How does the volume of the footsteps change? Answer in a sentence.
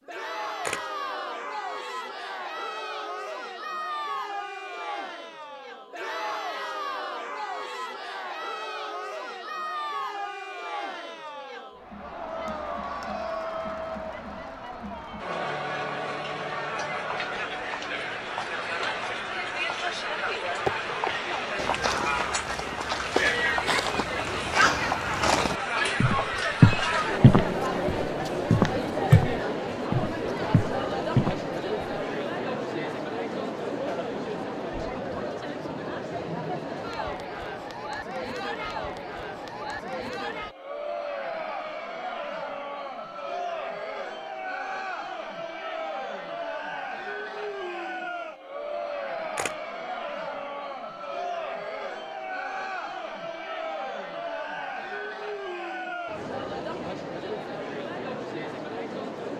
The volume of the footsteps goes up.